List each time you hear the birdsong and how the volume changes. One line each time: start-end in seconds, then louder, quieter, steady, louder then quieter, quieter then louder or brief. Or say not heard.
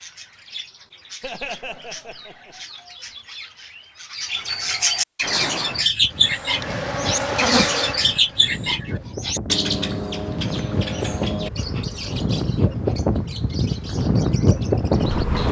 0.0-15.4 louder then quieter.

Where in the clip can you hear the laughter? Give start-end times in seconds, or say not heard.
1.2-2.5.